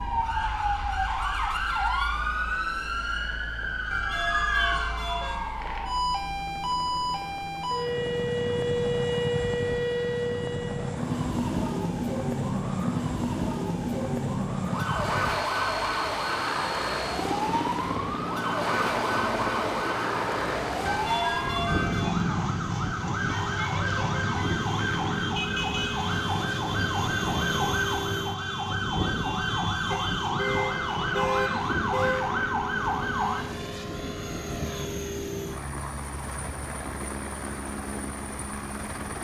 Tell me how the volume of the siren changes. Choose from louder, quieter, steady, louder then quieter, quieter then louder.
steady.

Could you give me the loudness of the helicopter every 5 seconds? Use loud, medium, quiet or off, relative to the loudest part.
quiet, loud, loud, loud, loud, loud, loud, loud.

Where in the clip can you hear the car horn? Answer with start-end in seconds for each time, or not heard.
3.9-5.5, 20.9-22.1, 29.9-32.2.